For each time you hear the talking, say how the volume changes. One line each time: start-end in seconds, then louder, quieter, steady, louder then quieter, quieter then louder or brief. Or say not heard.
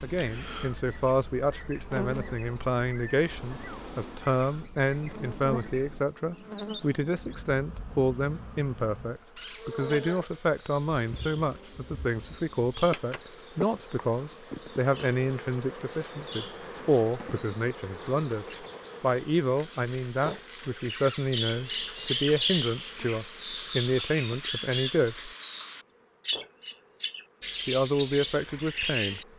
0.0-25.3 steady
27.6-29.2 brief.